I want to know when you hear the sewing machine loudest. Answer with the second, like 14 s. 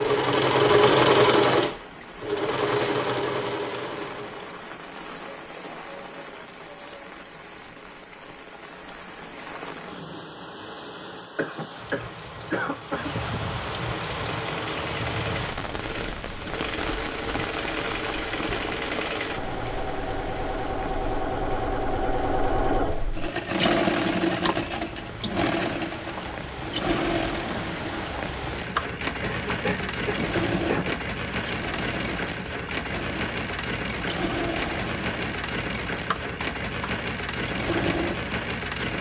1 s.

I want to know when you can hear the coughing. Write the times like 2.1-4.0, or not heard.
11.2-13.3, 29.2-31.1.